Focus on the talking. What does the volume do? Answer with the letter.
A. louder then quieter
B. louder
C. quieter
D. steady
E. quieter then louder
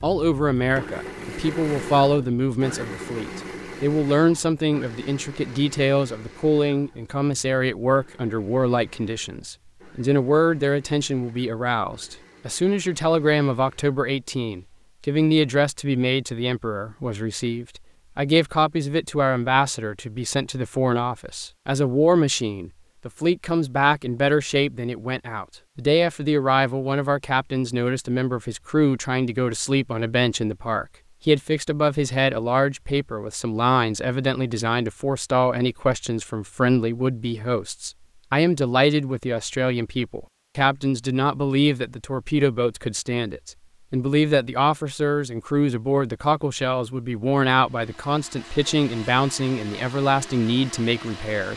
D.